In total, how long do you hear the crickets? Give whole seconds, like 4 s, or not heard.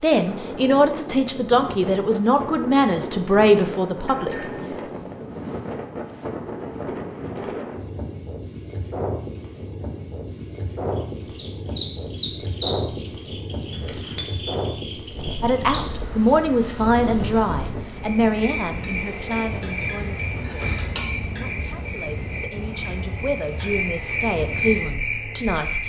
15 s.